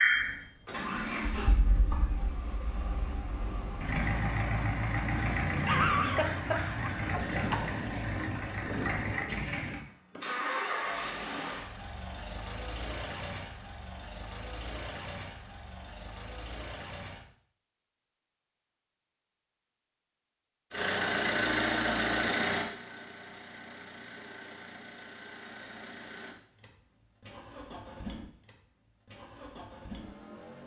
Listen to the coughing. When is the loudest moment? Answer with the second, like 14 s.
6 s.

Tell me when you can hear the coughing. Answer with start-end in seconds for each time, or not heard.
5.7-7.7.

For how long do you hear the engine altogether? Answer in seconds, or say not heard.
27 s.